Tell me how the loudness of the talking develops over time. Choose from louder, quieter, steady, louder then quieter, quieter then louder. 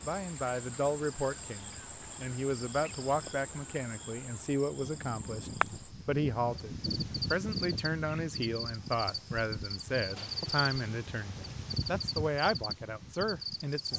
steady.